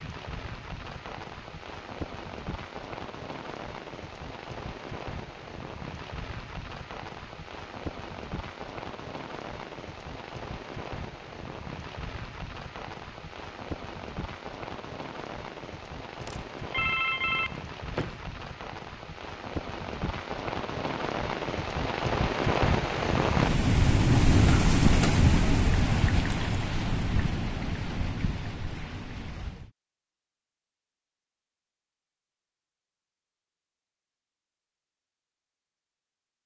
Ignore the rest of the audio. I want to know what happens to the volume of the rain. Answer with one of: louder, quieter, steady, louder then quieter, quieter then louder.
louder.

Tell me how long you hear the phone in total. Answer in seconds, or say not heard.
2 s.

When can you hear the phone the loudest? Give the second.
17 s.